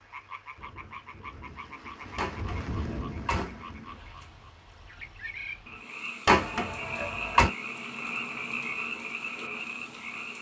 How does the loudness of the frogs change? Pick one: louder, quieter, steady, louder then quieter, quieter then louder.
louder.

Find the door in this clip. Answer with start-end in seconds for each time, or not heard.
2.1-3.6, 6.2-7.5.